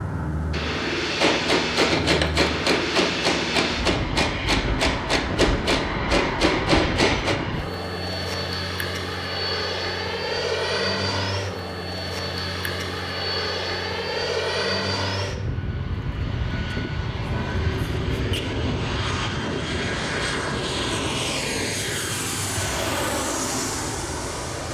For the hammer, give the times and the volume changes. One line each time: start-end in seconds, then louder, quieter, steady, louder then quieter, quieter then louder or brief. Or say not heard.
1.1-7.4 steady.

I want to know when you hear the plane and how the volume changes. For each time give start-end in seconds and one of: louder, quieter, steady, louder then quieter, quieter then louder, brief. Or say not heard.
0.0-24.6 steady.